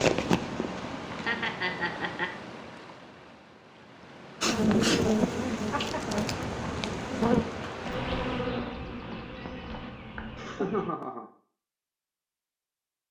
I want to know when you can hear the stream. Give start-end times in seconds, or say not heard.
0.0-8.6.